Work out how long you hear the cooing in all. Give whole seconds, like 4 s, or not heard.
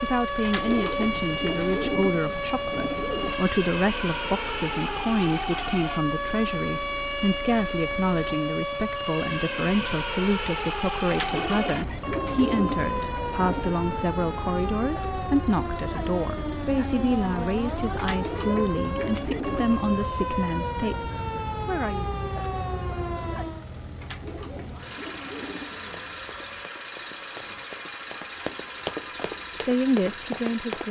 10 s.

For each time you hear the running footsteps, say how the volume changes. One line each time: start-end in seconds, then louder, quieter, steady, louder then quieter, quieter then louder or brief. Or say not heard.
25.9-30.8 louder.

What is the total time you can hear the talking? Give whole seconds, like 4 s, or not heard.
23 s.